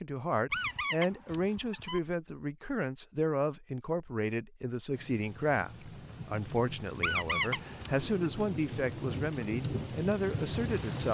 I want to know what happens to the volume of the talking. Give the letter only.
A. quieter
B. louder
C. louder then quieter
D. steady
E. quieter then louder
D.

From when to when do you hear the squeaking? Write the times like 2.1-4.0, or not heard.
0.5-2.0, 7.0-8.1.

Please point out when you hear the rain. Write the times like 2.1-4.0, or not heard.
4.9-11.1.